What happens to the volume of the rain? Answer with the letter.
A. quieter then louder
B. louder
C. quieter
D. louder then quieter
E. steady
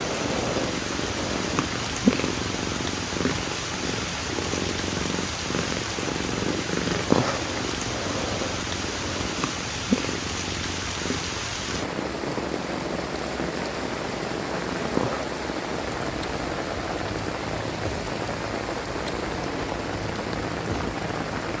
E.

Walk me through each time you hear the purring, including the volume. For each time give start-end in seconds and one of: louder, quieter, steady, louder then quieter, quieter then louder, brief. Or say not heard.
0.0-21.4 quieter.